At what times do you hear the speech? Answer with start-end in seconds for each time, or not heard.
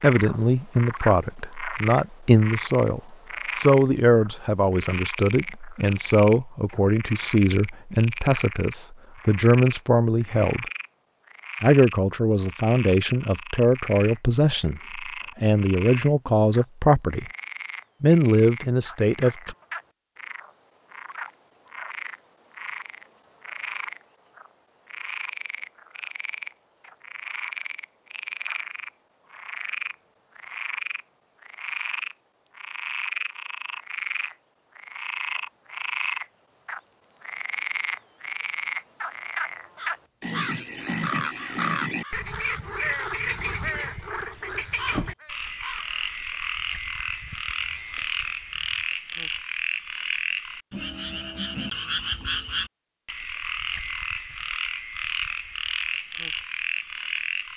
0.0-10.7, 11.6-17.2, 18.0-19.6.